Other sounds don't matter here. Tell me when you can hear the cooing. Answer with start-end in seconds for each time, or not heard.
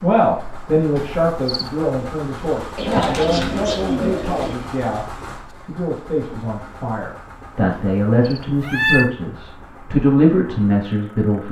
2.8-4.5.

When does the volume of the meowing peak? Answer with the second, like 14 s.
9 s.